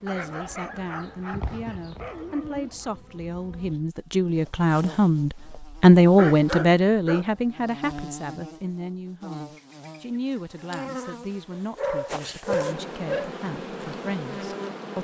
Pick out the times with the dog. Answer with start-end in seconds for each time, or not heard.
0.1-2.7, 6.2-7.2, 11.5-13.3.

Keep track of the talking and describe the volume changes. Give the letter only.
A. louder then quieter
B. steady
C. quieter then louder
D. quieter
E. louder
A.